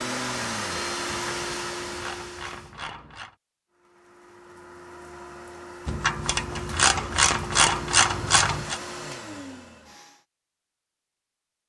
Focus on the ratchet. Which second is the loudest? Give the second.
8 s.